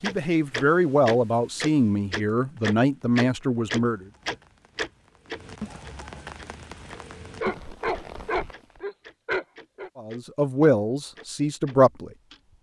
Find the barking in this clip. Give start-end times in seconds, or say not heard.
7.4-9.9.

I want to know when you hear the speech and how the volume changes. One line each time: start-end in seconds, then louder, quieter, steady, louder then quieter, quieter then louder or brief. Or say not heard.
0.0-4.0 steady
9.9-12.1 brief.